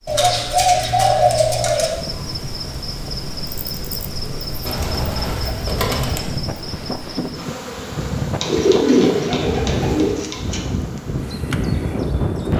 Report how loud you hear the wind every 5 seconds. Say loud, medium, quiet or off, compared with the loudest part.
medium, loud, loud.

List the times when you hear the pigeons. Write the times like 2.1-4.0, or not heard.
0.1-1.9, 4.7-6.3, 8.4-10.6.